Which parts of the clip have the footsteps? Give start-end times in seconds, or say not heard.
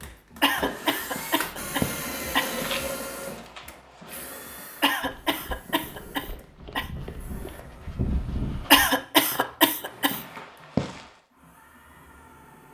0.5-11.2.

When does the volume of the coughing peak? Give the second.
9 s.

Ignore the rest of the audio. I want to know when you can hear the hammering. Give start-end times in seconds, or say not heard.
not heard.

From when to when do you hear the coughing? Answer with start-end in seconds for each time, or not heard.
0.4-2.5, 4.8-6.9, 8.7-10.2.